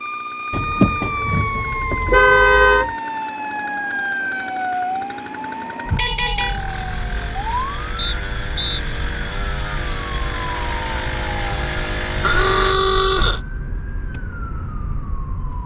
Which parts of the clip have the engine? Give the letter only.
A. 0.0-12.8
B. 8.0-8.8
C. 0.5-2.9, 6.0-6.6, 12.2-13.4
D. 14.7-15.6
A.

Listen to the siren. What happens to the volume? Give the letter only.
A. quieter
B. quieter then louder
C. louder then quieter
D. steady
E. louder
A.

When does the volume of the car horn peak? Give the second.
2 s.